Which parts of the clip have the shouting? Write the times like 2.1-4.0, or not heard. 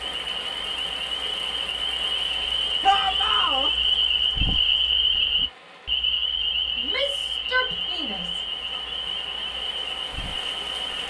2.8-3.7, 6.8-8.8.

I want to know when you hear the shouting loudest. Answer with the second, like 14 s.
3 s.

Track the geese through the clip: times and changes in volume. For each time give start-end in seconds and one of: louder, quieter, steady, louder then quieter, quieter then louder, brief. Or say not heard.
not heard.